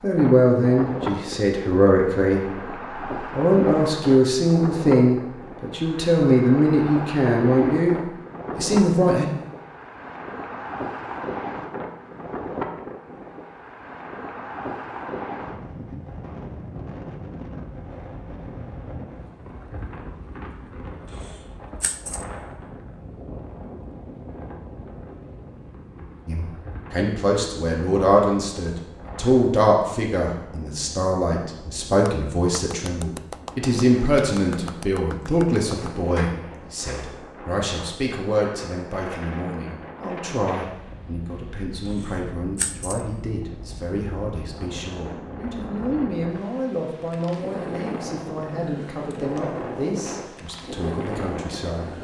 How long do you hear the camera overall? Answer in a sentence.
You can hear the camera for 2 seconds altogether.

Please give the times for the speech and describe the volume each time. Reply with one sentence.
You can hear the speech from 0.0 to 9.2 s, at a steady volume; and from 26.2 to 51.9 s, getting quieter.